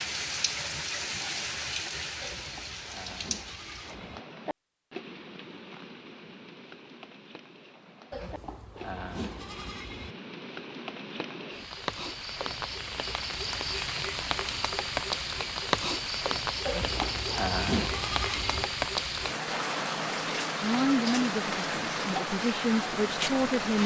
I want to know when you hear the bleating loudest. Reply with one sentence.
The loudest moment of the bleating is at 18 seconds.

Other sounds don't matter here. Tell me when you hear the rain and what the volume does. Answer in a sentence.
You can hear the rain from 0.0 to 23.8 s, getting quieter then louder.